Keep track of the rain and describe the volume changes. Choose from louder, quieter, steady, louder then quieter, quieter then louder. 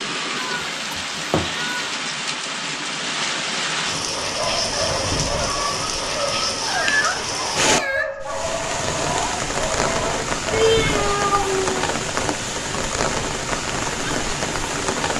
steady.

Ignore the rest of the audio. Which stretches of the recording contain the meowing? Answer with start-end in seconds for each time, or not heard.
0.3-1.9, 6.6-8.1, 10.5-11.8.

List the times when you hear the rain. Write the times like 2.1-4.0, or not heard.
0.0-15.1.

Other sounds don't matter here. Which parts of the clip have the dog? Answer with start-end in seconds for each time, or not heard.
4.3-11.2.